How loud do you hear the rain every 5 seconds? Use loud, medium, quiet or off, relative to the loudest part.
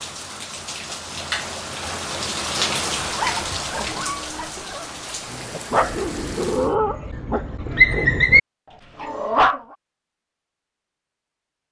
loud, medium, off.